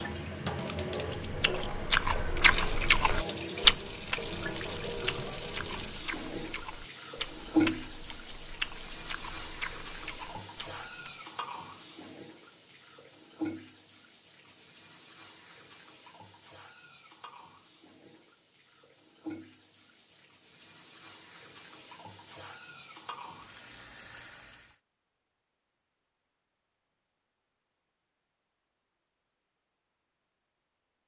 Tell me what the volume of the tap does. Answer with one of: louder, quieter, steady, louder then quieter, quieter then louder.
quieter.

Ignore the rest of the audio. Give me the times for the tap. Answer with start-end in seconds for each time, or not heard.
0.0-24.8.